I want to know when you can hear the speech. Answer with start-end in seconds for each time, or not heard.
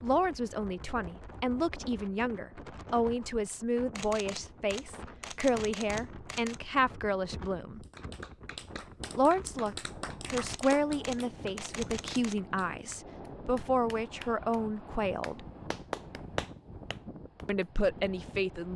0.0-7.8, 9.2-15.4, 17.4-18.7.